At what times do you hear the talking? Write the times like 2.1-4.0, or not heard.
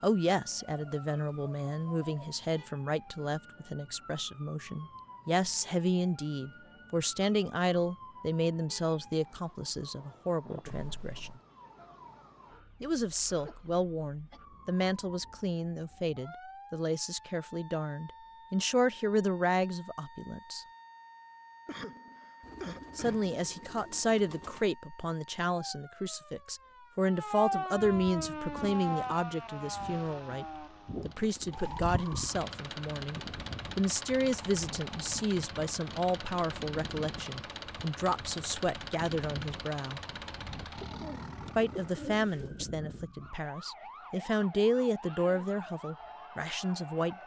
0.0-11.3, 12.8-20.6, 22.9-40.0, 41.5-47.2.